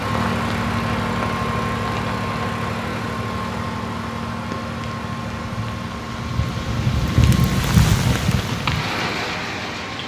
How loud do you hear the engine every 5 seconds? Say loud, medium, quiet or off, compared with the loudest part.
loud, medium.